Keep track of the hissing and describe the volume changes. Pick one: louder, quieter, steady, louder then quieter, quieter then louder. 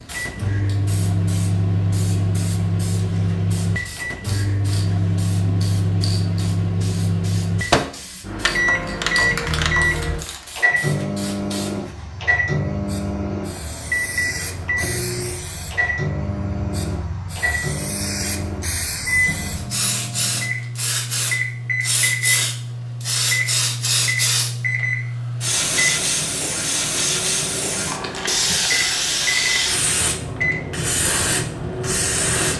louder.